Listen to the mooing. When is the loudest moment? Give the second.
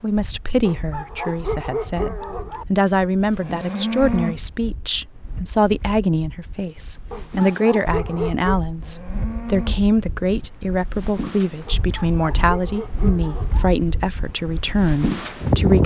4 s.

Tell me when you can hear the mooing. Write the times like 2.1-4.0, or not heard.
3.4-4.4, 8.8-9.8.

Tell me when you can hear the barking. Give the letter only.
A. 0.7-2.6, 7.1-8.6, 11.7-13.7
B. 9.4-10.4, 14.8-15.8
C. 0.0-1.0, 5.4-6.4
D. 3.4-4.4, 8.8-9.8
A.